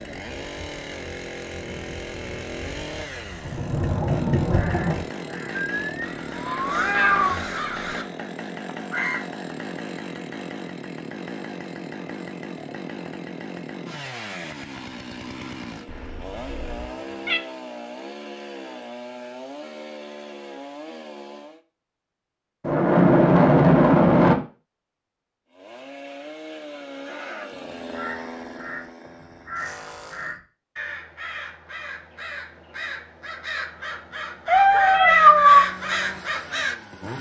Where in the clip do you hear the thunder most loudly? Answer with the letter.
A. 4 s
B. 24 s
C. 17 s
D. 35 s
B.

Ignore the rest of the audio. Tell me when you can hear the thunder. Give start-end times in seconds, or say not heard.
3.5-5.0, 22.6-24.4.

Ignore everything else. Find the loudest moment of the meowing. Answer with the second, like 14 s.
35 s.